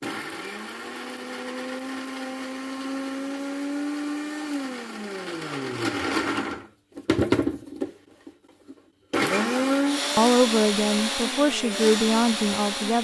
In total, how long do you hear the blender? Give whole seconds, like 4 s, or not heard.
13 s.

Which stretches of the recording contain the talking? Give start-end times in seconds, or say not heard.
10.2-12.9.